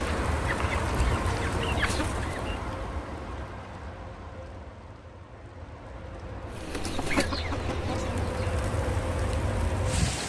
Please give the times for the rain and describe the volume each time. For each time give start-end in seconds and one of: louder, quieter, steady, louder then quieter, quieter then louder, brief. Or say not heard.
0.0-10.2 quieter then louder.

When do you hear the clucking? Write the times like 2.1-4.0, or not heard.
0.0-2.5, 6.5-8.5.